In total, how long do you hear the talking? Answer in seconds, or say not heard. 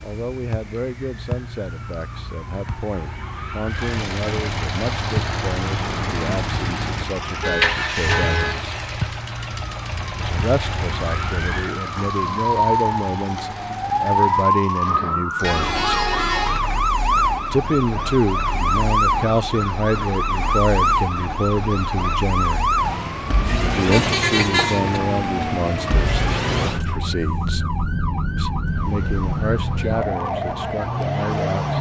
27 s.